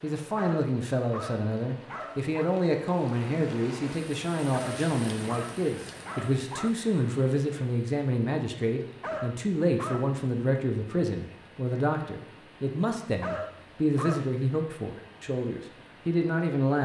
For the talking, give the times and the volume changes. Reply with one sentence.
You can hear the talking from 0.0 to 16.8 s, at a steady volume.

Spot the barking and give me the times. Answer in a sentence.
You can hear the barking from 0.3 to 2.4 s, from 4.5 to 6.7 s, from 9.0 to 10.2 s and from 13.2 to 14.3 s.